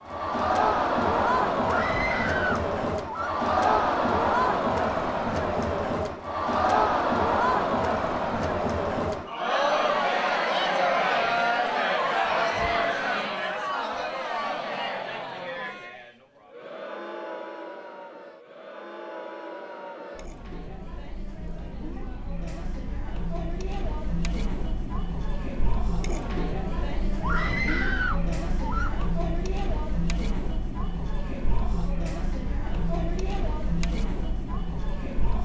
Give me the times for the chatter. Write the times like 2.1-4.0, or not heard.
0.0-35.4.